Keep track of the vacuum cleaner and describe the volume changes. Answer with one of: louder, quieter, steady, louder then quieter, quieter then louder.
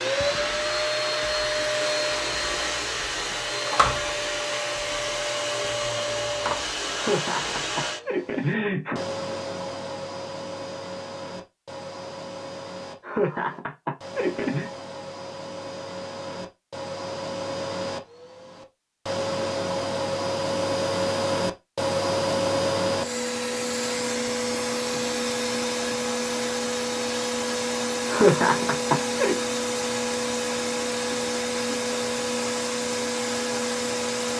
quieter then louder.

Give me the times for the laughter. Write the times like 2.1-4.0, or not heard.
7.0-9.1, 13.1-14.7, 28.1-29.4.